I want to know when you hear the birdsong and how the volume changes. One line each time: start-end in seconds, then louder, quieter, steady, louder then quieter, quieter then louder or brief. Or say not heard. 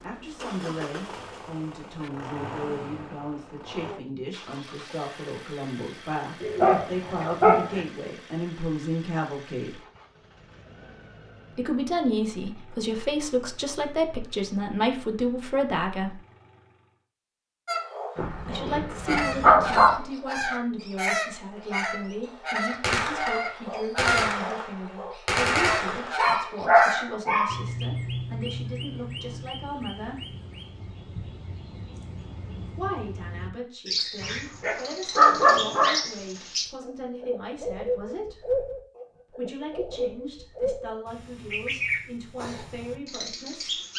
17.6-43.9 quieter then louder.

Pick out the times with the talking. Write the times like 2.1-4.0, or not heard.
0.0-9.8, 11.5-16.2, 18.4-30.4, 32.8-38.5, 39.3-43.8.